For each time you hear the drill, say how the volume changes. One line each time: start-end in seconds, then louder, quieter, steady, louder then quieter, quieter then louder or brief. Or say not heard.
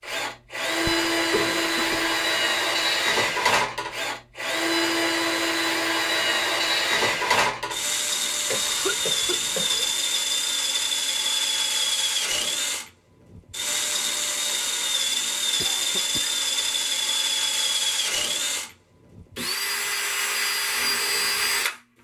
0.0-21.8 steady.